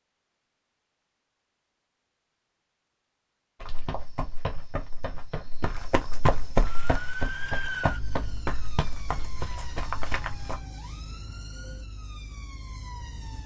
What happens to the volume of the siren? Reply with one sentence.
The loudness of the siren goes down.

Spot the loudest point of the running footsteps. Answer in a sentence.
The volume of the running footsteps peaks at 6 seconds.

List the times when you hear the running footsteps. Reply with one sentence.
You can hear the running footsteps from 3.6 to 10.6 s.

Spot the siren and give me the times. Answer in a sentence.
The siren can be heard from 6.6 to 13.4 s.